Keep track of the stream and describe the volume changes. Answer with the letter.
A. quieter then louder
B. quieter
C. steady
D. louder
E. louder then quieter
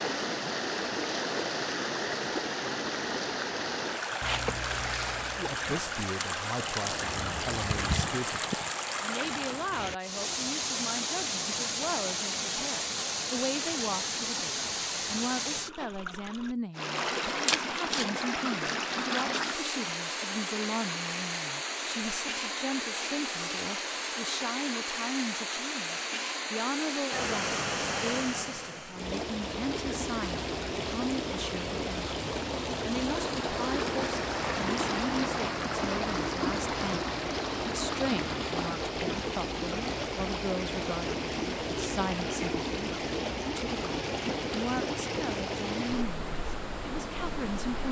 C.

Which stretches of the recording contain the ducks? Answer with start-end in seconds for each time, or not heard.
4.2-5.8.